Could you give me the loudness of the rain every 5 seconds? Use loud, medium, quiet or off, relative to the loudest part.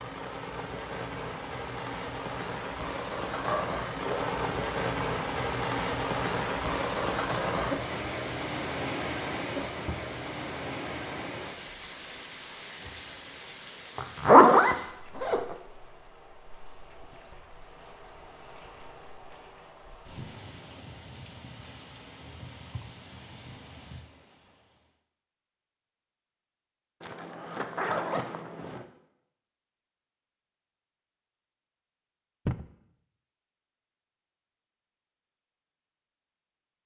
loud, loud, medium, quiet, quiet, off, off, off.